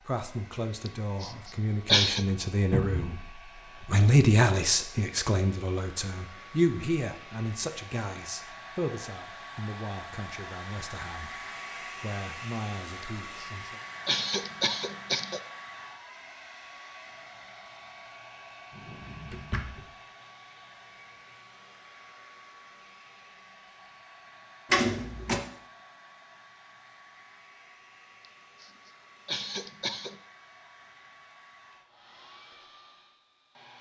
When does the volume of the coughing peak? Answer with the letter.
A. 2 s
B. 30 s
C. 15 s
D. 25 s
A.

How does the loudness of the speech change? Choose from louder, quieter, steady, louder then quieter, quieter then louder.
louder then quieter.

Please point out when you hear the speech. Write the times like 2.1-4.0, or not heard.
0.0-13.8.